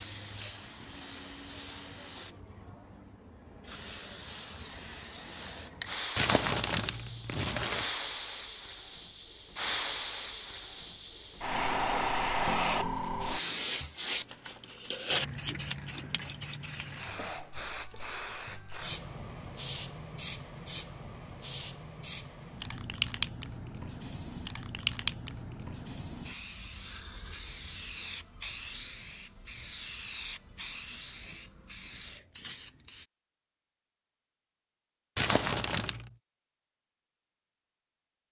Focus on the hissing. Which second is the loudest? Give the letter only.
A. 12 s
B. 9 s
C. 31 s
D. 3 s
A.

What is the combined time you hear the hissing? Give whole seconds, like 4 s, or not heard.
33 s.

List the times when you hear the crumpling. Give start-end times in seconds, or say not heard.
6.2-7.9, 35.1-36.1.